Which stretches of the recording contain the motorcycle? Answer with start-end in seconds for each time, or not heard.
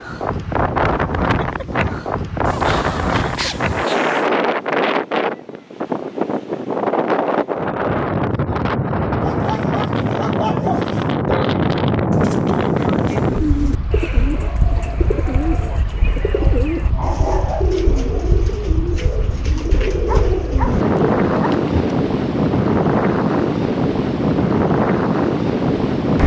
not heard.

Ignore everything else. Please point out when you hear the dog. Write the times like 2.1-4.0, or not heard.
2.5-4.3, 9.2-11.1, 16.3-17.9, 19.9-21.5.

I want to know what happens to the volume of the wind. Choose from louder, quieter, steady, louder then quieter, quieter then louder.
quieter then louder.